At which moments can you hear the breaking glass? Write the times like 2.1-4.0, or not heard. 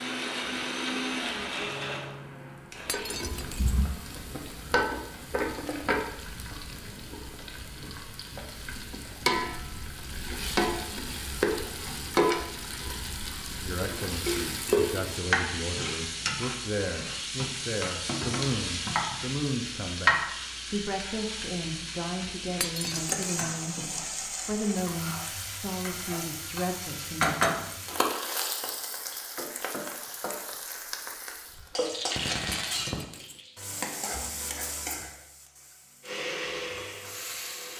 2.9-3.8, 22.6-23.2, 32.5-33.4.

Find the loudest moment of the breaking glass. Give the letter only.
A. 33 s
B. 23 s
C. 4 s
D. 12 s
B.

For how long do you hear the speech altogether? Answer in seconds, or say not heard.
14 s.